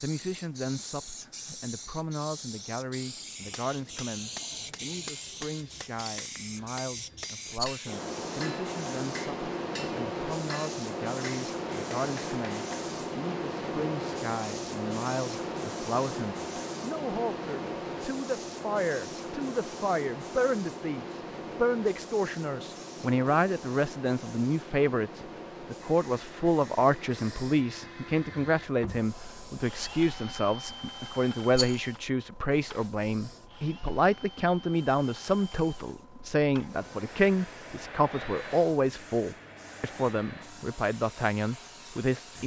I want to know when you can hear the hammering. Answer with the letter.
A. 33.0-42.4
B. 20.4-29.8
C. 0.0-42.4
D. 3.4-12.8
D.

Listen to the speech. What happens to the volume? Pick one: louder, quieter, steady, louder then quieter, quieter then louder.
louder.